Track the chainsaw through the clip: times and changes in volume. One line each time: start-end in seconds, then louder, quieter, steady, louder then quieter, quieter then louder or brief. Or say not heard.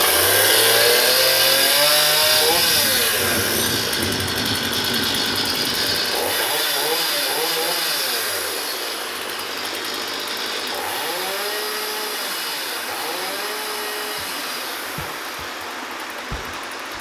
0.0-16.9 quieter.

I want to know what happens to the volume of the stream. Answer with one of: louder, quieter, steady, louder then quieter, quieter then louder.
steady.